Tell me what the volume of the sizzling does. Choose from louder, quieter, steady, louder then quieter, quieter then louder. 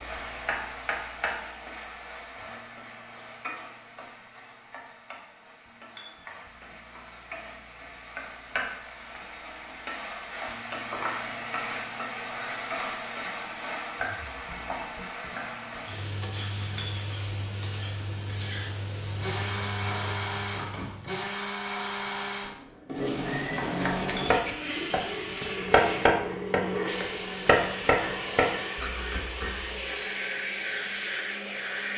quieter then louder.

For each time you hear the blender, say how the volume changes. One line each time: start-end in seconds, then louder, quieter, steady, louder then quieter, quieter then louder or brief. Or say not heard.
19.1-31.9 steady.